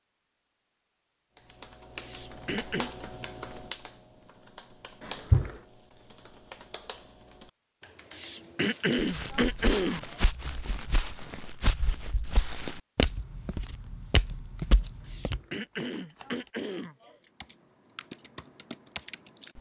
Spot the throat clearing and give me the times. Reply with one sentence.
The throat clearing can be heard from 2.0 to 2.9 s, from 8.1 to 10.2 s and from 15.1 to 17.1 s.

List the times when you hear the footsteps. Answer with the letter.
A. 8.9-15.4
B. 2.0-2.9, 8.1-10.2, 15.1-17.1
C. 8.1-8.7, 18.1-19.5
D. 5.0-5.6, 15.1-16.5
A.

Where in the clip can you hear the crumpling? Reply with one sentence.
The crumpling can be heard from 5.0 to 5.6 s and from 15.1 to 16.5 s.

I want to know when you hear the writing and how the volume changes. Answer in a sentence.
You can't hear the writing here.